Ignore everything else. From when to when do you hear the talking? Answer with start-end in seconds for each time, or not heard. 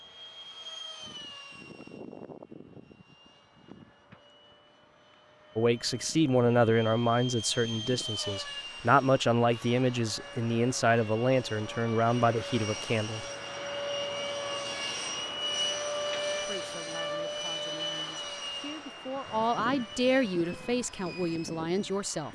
5.5-13.2, 16.4-22.2.